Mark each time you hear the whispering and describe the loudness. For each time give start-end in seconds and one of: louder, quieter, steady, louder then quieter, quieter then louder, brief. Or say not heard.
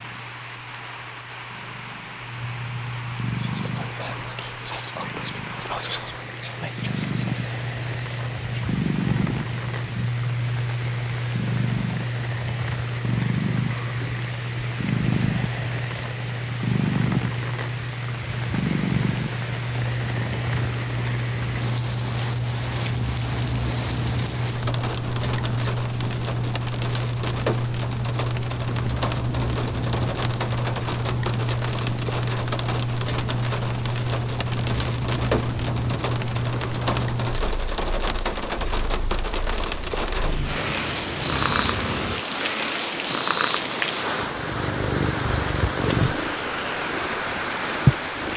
3.3-8.8 louder then quieter.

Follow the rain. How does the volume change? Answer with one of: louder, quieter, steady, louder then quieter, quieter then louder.
louder.